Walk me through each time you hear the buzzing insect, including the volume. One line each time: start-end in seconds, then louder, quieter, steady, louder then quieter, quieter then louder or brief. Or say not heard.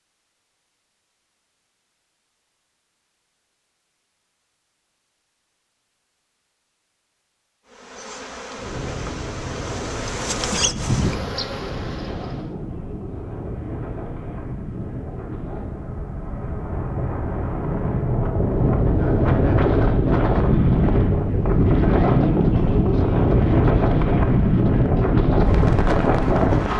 7.7-12.5 louder then quieter.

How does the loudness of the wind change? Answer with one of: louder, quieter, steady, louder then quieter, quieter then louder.
louder.